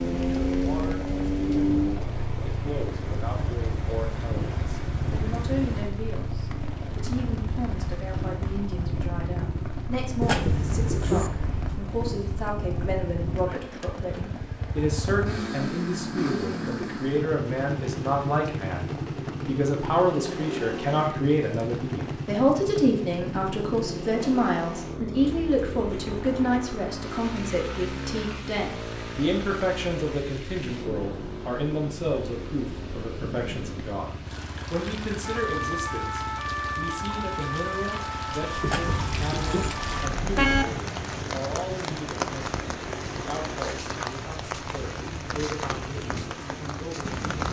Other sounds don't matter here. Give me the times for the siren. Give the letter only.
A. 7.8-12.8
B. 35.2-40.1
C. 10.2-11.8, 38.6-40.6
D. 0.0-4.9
B.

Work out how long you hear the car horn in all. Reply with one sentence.
You can hear the car horn for 4 seconds altogether.